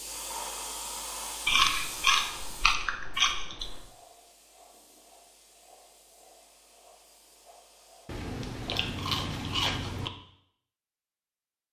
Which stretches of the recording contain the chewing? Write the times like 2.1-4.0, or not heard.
1.4-3.9, 8.1-10.1.